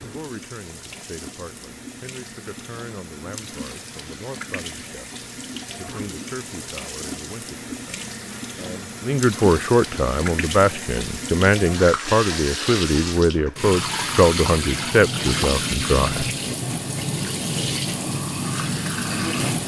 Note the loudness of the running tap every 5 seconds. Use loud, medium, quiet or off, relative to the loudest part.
quiet, medium, loud, loud.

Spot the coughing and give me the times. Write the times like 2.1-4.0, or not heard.
not heard.